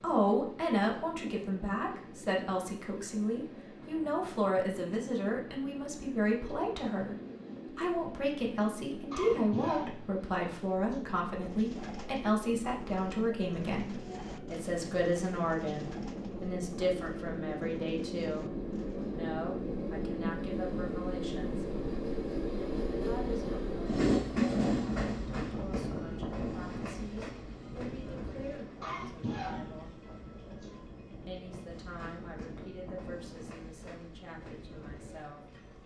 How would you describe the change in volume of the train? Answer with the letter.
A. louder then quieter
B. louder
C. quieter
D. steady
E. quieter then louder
A.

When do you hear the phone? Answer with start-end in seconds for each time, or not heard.
not heard.